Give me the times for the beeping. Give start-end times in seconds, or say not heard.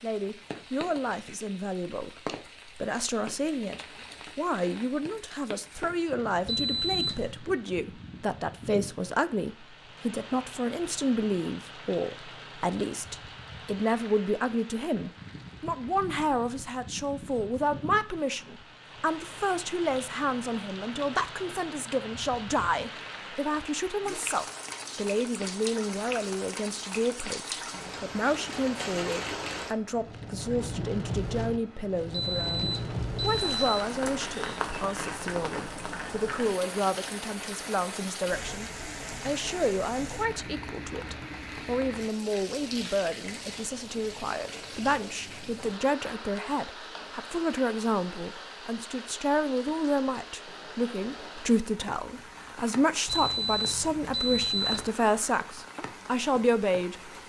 6.5-7.3, 32.1-33.9, 53.0-54.9.